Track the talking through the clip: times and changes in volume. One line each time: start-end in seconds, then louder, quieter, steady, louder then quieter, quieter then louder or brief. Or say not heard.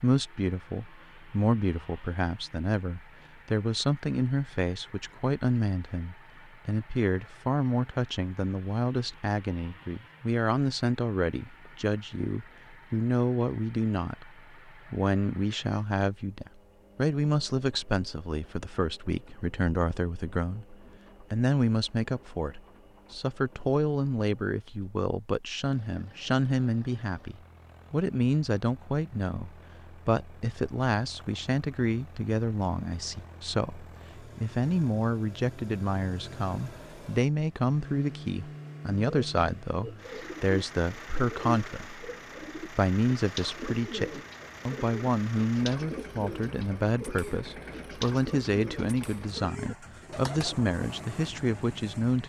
0.0-52.2 steady.